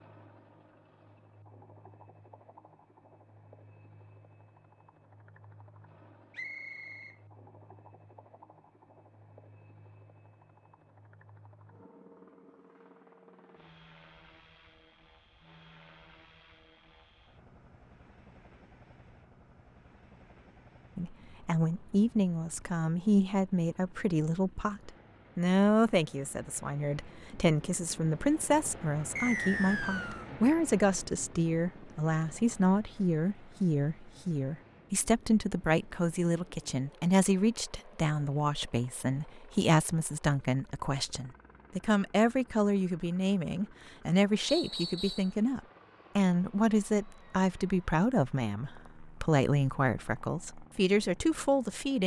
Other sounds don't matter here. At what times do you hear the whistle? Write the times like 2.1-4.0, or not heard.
6.3-7.2, 29.1-30.2, 44.5-45.3.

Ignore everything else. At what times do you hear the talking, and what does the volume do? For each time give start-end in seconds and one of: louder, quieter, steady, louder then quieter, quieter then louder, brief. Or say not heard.
20.9-52.0 steady.